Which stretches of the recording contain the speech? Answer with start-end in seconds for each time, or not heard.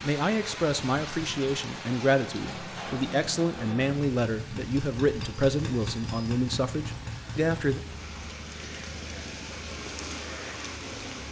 0.0-7.8.